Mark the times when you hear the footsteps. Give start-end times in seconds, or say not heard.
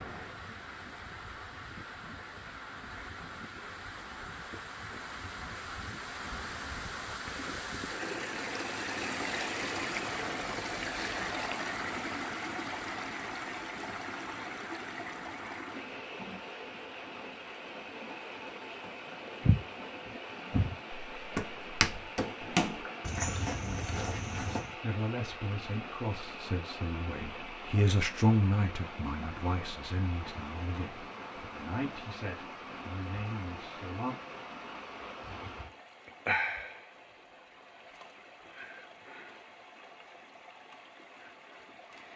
19.4-24.7.